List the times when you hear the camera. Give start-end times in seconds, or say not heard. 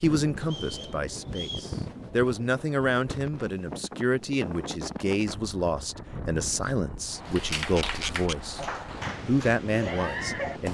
7.5-8.3.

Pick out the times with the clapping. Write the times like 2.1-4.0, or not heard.
7.2-10.6.